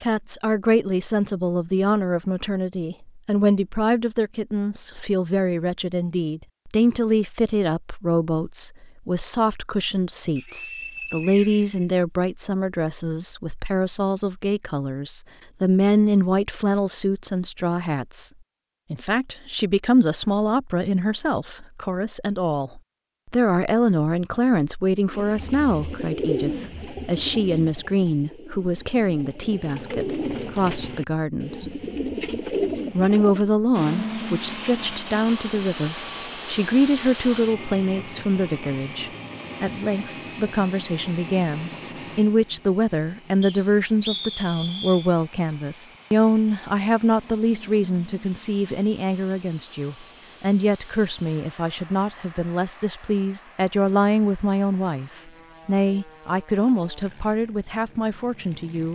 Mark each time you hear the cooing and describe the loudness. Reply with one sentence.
You can hear the cooing from 25.1 to 33.5 s, getting quieter then louder.